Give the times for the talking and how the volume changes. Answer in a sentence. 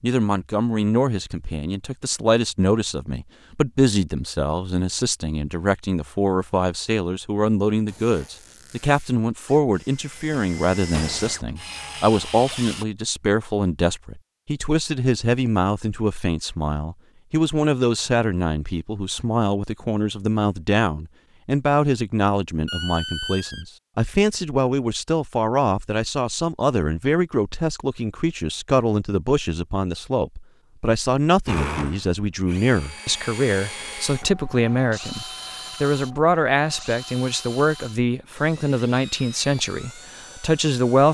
You can hear the talking from 0.0 to 41.0 s, at a steady volume.